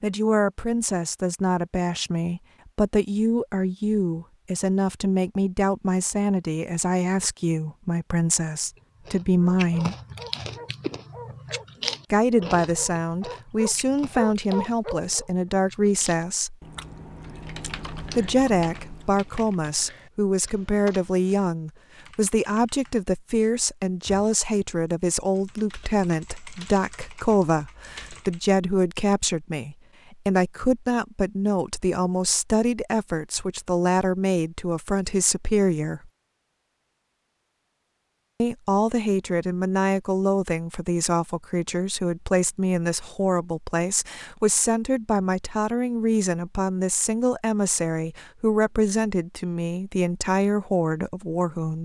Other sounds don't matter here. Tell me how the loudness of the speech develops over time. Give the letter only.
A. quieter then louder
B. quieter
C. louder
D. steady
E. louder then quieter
D.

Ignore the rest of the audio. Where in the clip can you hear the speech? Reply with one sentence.
The speech can be heard from 0.0 to 9.9 s, from 12.1 to 16.6 s, from 18.1 to 36.1 s and from 38.4 to 51.8 s.